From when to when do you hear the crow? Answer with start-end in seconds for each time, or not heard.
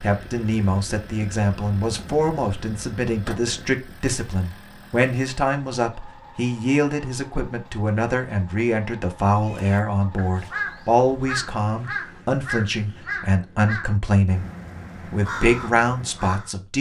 9.4-16.6.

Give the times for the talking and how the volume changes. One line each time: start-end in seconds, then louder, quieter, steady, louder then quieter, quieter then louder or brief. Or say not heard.
0.0-14.4 steady
15.1-16.7 brief.